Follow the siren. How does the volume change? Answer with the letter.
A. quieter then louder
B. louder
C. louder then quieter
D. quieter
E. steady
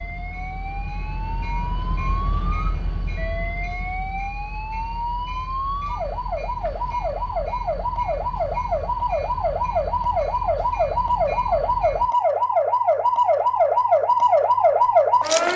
B.